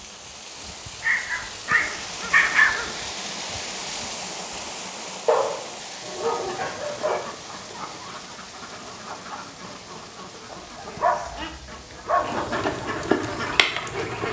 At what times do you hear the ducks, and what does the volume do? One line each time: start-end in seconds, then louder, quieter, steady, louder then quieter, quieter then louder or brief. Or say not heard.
6.1-14.2 louder.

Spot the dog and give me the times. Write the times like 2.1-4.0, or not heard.
1.0-2.9, 5.2-7.2, 10.5-12.2.